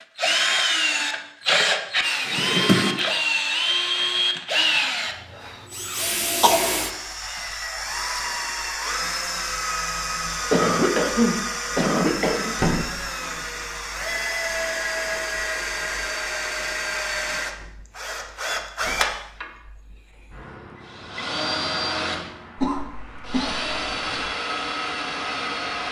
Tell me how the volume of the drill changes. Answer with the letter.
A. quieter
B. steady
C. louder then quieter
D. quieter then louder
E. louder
A.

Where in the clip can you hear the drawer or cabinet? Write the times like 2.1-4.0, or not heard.
2.2-3.0.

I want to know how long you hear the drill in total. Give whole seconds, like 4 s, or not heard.
26 s.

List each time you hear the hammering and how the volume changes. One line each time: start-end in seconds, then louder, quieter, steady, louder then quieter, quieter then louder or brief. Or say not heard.
not heard.